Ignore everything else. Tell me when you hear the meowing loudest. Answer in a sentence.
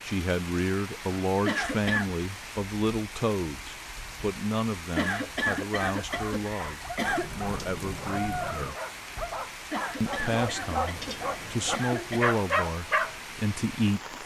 The loudest moment of the meowing is at 8 seconds.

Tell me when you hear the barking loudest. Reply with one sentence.
The loudest moment of the barking is at 12 seconds.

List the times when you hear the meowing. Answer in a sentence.
The meowing can be heard from 7.0 to 8.8 s.